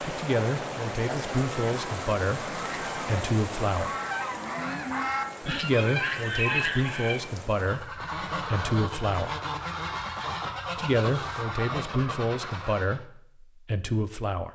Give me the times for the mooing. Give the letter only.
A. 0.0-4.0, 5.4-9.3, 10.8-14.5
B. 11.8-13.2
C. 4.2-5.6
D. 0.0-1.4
C.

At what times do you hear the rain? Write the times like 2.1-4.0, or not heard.
0.0-8.0.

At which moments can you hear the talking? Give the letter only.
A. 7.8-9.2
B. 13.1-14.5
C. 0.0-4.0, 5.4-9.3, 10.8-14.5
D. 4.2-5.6
C.